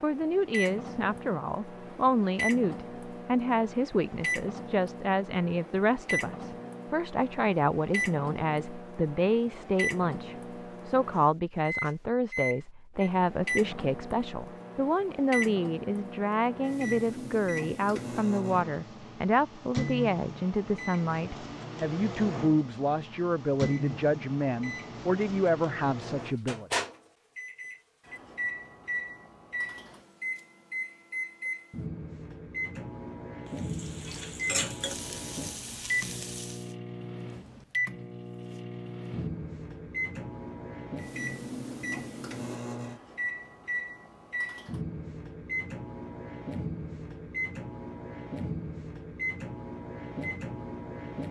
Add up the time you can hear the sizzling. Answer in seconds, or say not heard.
3 s.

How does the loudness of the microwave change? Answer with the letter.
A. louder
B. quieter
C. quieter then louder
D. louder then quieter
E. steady
E.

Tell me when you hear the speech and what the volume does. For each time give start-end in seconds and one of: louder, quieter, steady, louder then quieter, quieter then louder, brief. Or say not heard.
0.0-26.7 steady.